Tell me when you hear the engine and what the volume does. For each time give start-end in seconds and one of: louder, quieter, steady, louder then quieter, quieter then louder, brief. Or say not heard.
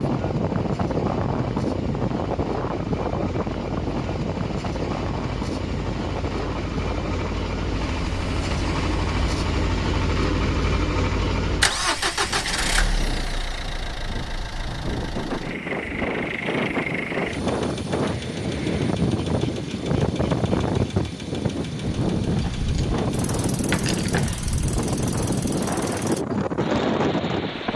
0.0-27.7 louder then quieter.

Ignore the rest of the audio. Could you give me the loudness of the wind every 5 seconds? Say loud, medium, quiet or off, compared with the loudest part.
loud, medium, quiet, loud, loud, loud.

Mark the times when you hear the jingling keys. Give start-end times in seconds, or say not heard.
22.3-24.4.